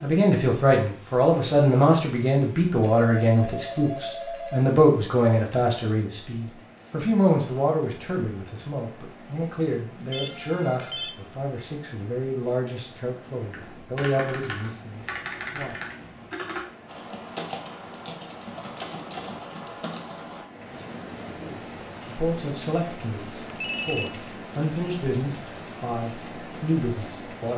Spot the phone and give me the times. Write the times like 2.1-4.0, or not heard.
3.0-4.7, 10.1-11.2, 23.4-24.1.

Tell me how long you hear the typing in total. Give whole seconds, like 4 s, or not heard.
7 s.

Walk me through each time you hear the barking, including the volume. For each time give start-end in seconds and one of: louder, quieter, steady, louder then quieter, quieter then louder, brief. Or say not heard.
not heard.